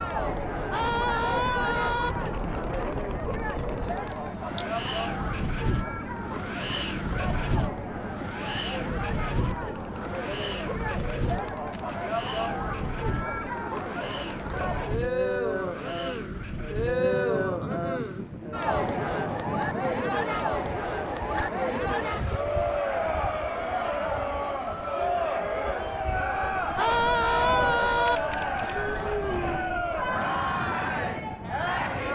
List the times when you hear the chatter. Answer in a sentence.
You can hear the chatter from 0.0 to 32.1 s.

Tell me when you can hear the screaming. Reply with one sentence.
You can hear the screaming from 0.7 to 2.1 s and from 26.8 to 28.2 s.